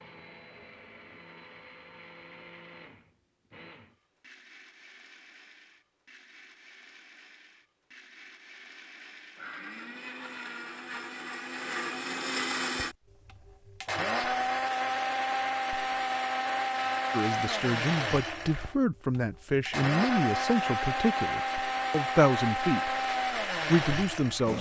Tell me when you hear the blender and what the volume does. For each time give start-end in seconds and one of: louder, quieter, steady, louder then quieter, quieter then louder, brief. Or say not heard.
0.0-24.5 louder.